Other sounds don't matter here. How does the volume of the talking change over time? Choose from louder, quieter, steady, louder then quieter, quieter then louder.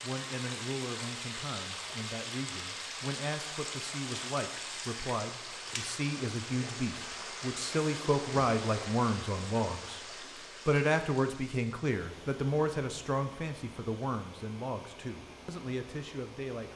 louder then quieter.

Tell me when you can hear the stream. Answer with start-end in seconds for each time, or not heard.
0.0-16.7.